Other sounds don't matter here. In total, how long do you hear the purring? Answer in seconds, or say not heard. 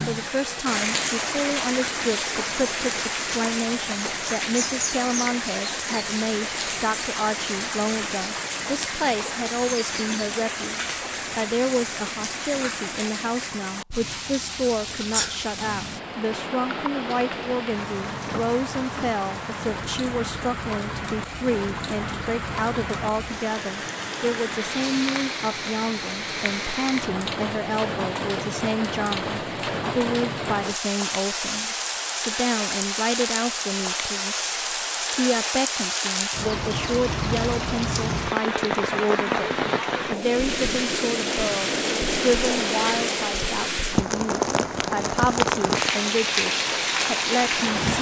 not heard.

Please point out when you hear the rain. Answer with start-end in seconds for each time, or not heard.
0.0-47.9.